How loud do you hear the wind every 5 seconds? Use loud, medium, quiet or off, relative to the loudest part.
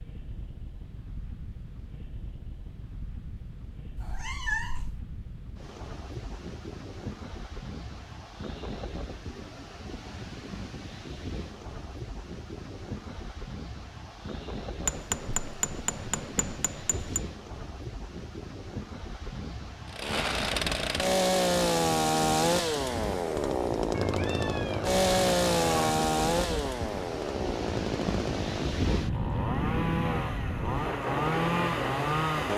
quiet, medium, medium, medium, medium, loud, loud.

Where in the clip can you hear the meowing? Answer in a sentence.
The meowing can be heard from 4.0 to 5.0 s and from 23.9 to 25.9 s.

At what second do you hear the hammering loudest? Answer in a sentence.
The volume of the hammering peaks at 15 seconds.